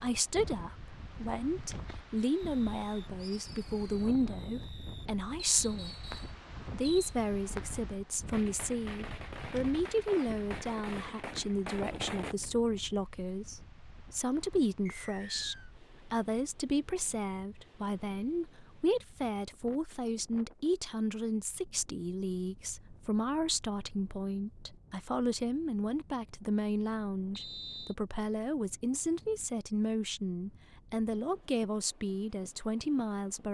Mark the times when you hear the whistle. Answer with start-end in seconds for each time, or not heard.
5.5-6.3, 14.8-15.7, 27.4-27.9.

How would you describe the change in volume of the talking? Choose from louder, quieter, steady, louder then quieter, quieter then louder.
steady.